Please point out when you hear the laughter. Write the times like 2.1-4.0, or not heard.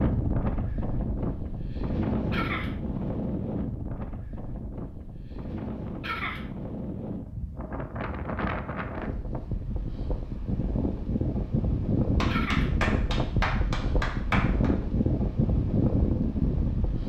2.3-2.8, 6.0-6.5, 12.2-12.8.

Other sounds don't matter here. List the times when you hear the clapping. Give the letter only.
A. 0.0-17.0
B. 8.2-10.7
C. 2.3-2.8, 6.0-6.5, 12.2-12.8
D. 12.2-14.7
D.